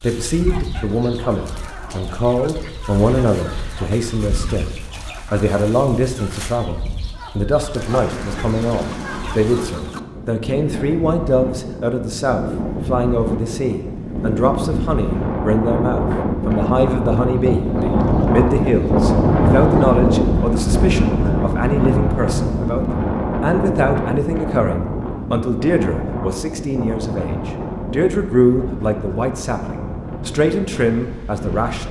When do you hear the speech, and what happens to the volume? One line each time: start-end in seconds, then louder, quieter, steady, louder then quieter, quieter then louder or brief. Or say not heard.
0.0-31.8 steady.